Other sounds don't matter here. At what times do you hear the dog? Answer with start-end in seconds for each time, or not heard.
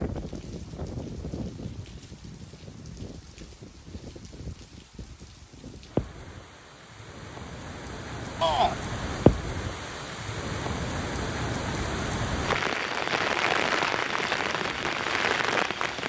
not heard.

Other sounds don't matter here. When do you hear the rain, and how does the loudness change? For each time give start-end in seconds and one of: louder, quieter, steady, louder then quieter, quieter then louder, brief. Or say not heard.
0.0-16.0 louder.